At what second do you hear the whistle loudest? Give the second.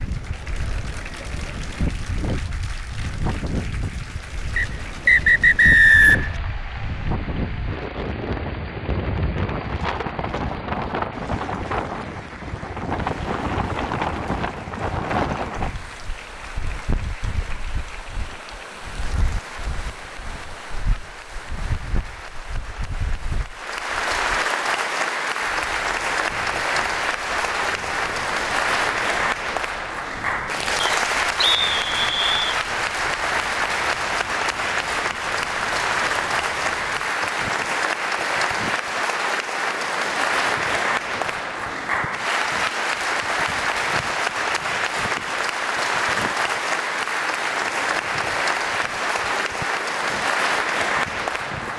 6 s.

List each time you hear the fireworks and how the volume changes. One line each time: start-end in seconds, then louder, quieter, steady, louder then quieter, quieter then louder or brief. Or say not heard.
not heard.